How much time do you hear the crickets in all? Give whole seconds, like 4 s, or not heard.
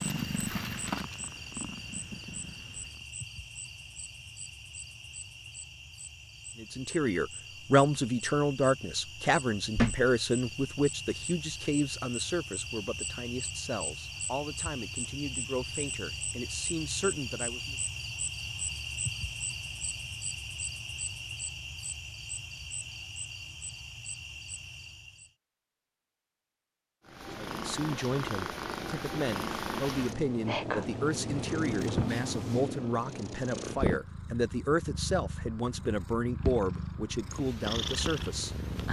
25 s.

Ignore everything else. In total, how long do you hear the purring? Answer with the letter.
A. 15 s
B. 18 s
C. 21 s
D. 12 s
A.